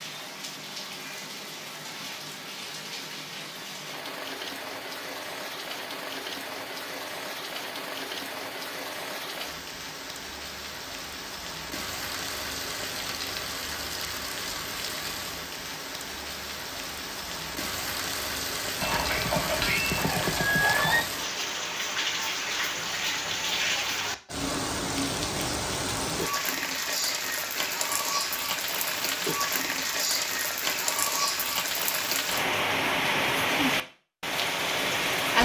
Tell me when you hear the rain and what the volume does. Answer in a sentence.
You can hear the rain from 0.0 to 35.3 s, getting louder.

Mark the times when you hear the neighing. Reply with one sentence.
The neighing can be heard from 18.8 to 21.1 s.